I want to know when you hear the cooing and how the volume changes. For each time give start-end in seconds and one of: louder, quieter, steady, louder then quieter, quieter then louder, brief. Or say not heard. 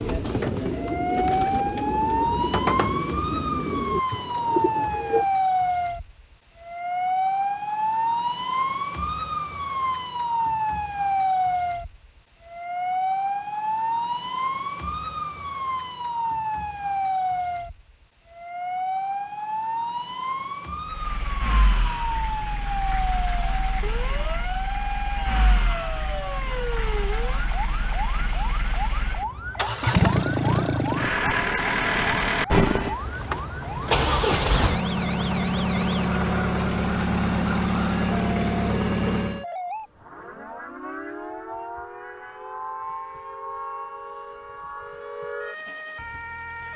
0.0-5.2 steady.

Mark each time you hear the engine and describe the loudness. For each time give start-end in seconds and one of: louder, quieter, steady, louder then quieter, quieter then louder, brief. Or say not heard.
20.9-39.5 louder.